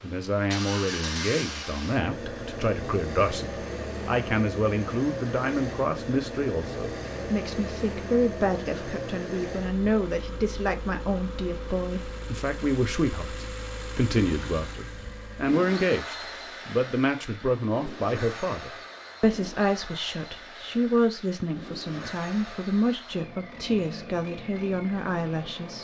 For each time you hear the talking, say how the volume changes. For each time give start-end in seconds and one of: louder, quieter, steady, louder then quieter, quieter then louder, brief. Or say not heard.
0.0-25.8 steady.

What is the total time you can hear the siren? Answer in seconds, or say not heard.
not heard.